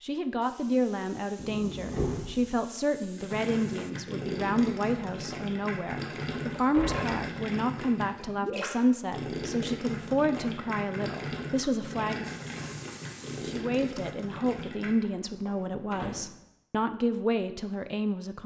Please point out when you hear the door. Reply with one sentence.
You can hear the door from 1.4 to 2.5 s, from 6.5 to 7.2 s and from 15.0 to 16.2 s.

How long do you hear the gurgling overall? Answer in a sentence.
You can hear the gurgling for 12 seconds altogether.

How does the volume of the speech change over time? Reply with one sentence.
The volume of the speech stays about the same.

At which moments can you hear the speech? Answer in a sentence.
The speech can be heard from 0.0 to 12.2 s and from 13.4 to 18.4 s.